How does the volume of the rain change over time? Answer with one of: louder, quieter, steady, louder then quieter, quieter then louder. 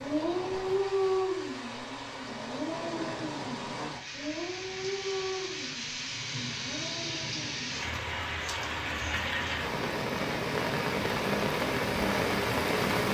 louder.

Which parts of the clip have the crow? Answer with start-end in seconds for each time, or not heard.
not heard.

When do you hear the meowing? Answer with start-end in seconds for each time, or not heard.
not heard.